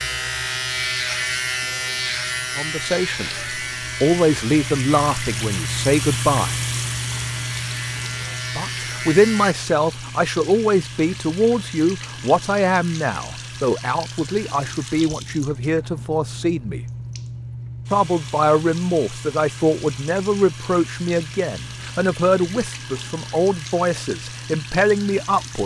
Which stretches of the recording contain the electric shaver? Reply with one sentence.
You can hear the electric shaver from 0.0 to 9.6 s.